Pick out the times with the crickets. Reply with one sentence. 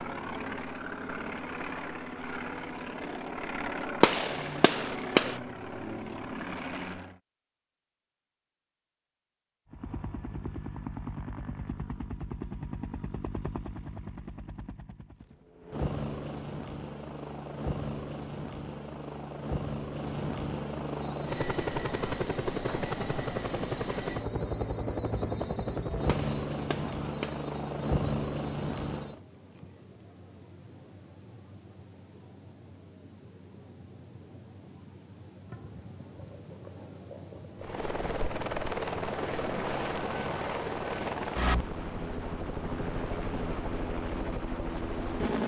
The crickets can be heard from 21.0 to 45.4 s.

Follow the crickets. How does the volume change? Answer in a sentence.
The loudness of the crickets stays about the same.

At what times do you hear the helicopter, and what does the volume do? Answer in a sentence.
The helicopter can be heard from 0.0 to 7.2 s, at a steady volume; from 9.7 to 29.2 s, getting louder; and from 37.6 to 45.4 s, at a steady volume.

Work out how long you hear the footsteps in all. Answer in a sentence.
You can't hear the footsteps here.